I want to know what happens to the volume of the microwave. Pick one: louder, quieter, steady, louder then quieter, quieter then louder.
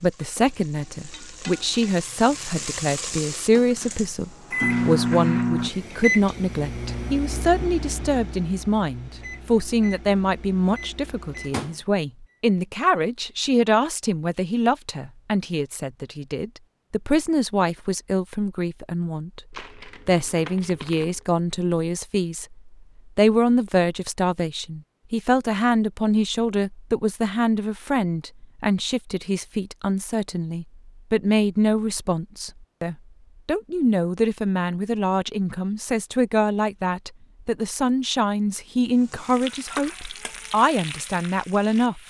quieter.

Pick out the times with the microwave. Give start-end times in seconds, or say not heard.
4.5-11.9.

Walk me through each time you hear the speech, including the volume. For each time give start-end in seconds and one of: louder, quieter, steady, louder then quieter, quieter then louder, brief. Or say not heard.
0.0-42.0 steady.